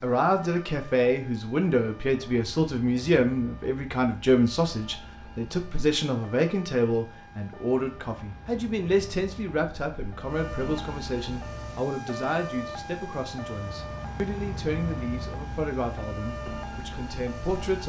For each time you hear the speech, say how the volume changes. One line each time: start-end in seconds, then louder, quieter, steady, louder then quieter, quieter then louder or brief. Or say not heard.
0.0-17.8 quieter.